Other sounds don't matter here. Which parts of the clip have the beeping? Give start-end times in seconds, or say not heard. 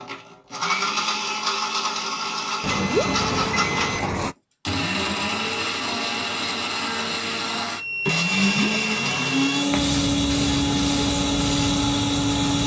2.6-4.3, 7.7-9.6.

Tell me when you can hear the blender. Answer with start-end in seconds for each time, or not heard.
0.0-12.6.